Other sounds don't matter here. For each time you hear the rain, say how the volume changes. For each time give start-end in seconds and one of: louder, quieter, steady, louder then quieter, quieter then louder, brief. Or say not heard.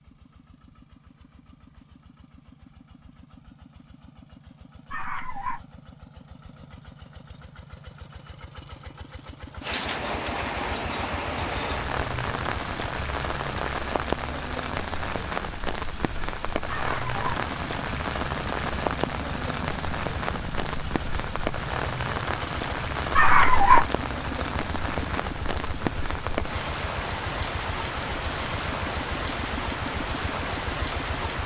9.6-31.4 steady.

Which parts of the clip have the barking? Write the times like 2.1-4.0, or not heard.
4.9-5.6, 16.6-17.1, 23.1-23.9.